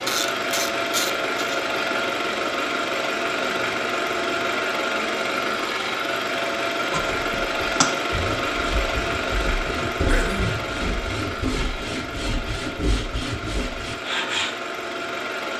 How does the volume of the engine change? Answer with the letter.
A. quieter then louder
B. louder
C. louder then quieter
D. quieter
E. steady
D.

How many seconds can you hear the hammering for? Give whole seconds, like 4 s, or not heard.
not heard.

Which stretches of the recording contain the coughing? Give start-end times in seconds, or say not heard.
10.1-10.7.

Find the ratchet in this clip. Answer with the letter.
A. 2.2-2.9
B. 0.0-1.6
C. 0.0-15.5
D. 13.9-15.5
B.